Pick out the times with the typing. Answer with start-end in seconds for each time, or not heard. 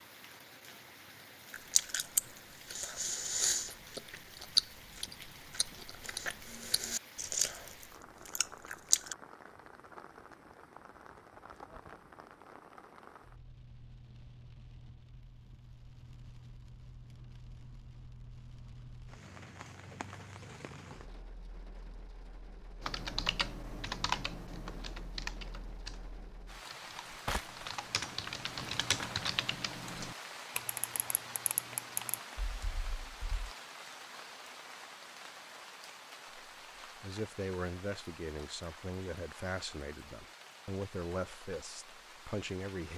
22.8-33.5.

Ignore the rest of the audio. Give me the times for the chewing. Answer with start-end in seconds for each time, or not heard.
1.5-9.2.